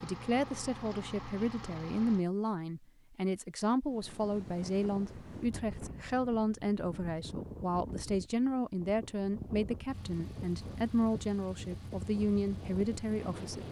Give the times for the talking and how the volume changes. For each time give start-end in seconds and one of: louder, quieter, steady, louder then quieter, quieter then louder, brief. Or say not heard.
0.0-13.6 steady.